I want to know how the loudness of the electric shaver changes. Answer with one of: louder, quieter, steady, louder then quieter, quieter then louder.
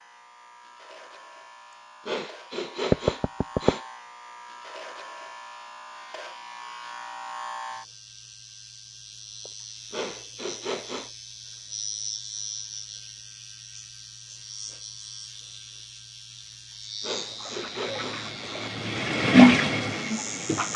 louder.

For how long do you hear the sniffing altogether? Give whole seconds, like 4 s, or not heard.
6 s.